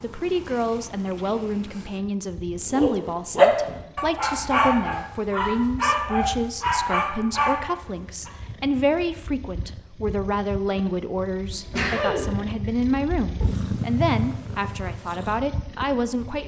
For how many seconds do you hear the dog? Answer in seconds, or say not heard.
6 s.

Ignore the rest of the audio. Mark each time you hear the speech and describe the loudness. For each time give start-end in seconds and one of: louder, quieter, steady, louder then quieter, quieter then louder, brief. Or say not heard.
0.0-16.4 steady.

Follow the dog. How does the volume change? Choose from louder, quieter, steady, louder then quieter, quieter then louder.
quieter.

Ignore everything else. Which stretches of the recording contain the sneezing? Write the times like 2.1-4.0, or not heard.
11.5-12.8.